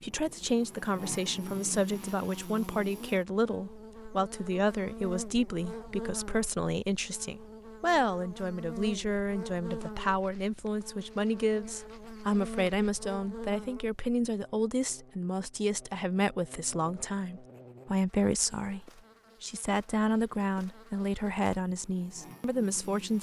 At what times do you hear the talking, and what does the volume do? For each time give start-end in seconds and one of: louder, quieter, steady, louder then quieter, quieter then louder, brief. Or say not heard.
0.0-23.1 steady.